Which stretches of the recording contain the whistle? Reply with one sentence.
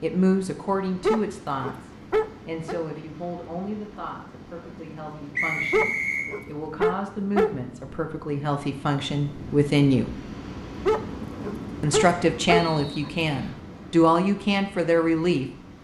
You can hear the whistle from 5.3 to 6.3 s and from 12.6 to 13.6 s.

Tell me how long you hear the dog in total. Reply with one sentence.
You can hear the dog for 6 seconds altogether.